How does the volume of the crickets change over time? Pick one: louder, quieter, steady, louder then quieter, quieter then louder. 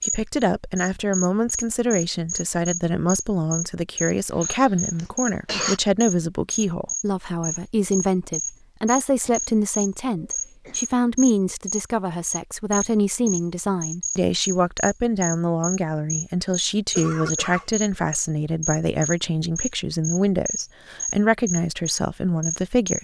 steady.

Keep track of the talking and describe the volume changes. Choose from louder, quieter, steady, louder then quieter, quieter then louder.
steady.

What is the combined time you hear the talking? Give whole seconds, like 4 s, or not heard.
23 s.